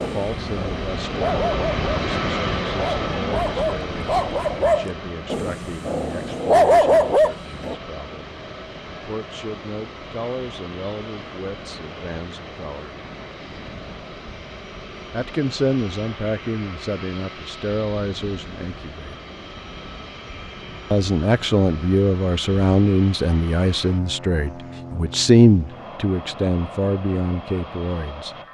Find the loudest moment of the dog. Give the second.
7 s.